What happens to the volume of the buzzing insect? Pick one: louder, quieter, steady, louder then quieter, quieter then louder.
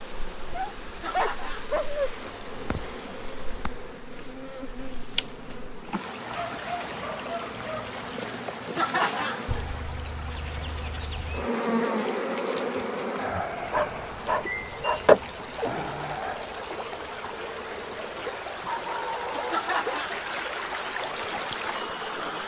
louder then quieter.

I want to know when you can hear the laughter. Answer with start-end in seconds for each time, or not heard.
1.0-1.8, 8.8-9.4, 19.5-20.2.